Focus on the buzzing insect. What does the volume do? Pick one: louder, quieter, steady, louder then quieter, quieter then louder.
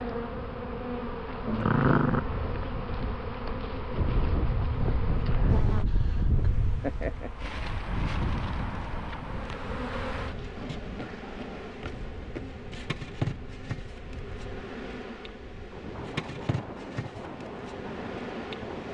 steady.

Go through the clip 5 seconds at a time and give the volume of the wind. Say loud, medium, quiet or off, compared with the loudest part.
loud, loud, quiet, medium.